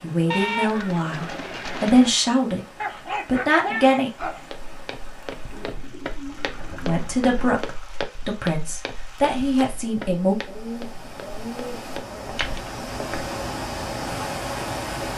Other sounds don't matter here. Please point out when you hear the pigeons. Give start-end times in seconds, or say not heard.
0.3-2.1, 5.5-7.5, 10.4-12.4.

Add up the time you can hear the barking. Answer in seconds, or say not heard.
2 s.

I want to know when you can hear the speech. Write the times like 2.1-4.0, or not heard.
0.0-4.1, 6.8-10.3.